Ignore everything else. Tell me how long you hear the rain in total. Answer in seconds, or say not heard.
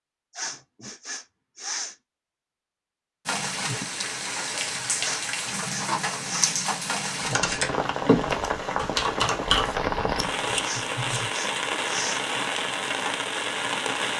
11 s.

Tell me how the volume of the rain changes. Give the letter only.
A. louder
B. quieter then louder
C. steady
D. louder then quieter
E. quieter
C.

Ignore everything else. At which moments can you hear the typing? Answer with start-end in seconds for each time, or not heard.
7.0-11.3.